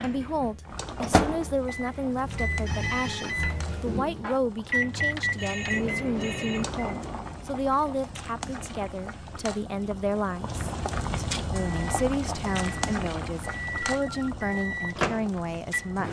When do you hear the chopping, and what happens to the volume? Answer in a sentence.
You can't hear the chopping here.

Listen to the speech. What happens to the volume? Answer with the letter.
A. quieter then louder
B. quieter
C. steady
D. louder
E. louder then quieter
C.